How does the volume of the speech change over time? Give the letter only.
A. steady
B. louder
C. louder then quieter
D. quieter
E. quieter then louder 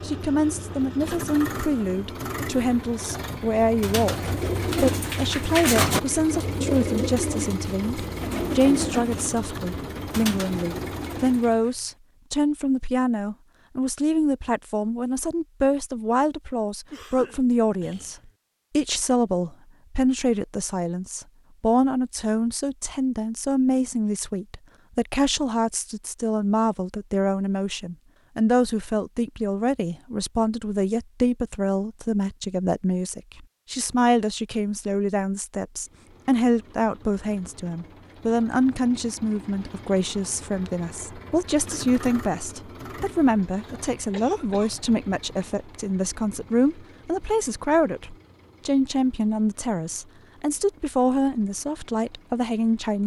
A.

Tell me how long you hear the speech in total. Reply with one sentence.
The speech can be heard for 53 seconds in total.